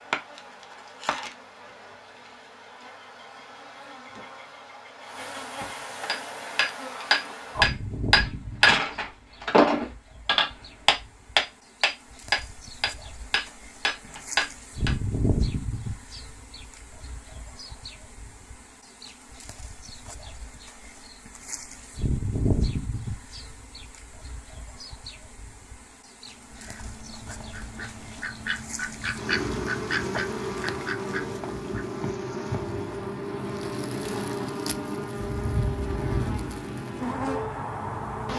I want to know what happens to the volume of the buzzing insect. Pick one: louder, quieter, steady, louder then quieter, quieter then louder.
louder.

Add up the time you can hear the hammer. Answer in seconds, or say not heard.
9 s.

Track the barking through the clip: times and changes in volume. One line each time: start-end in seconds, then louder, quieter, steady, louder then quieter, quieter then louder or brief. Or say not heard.
not heard.